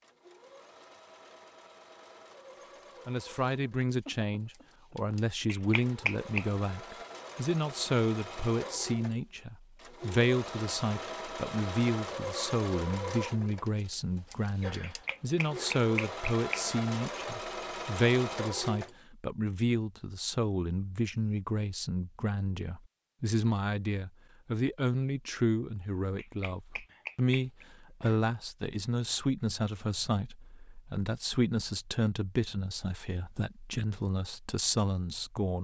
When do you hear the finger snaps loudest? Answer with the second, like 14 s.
6 s.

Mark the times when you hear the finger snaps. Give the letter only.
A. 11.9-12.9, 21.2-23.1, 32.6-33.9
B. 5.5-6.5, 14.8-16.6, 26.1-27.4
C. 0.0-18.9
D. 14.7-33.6
B.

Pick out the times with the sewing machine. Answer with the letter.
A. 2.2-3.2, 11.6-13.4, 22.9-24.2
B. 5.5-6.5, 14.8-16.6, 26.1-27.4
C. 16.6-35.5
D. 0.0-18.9
D.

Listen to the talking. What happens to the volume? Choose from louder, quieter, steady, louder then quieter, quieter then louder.
steady.